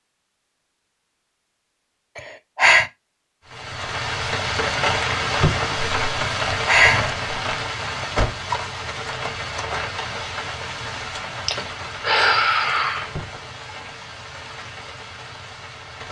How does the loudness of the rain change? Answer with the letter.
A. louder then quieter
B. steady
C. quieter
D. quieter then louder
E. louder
C.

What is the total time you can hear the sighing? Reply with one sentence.
You can hear the sighing for 3 seconds altogether.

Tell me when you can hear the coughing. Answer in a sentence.
You can't hear the coughing here.